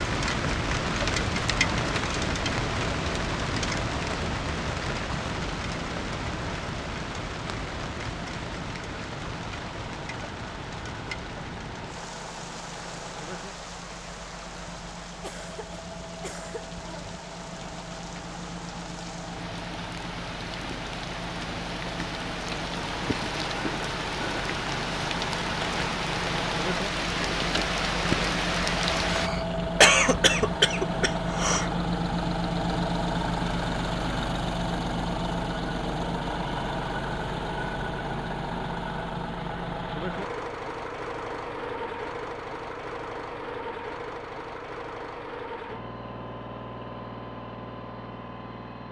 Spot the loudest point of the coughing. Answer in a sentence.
The volume of the coughing peaks at 30 seconds.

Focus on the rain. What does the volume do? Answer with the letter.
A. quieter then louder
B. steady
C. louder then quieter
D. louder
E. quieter
A.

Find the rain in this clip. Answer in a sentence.
You can hear the rain from 0.0 to 29.3 s.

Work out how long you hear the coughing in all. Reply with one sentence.
You can hear the coughing for 5 seconds altogether.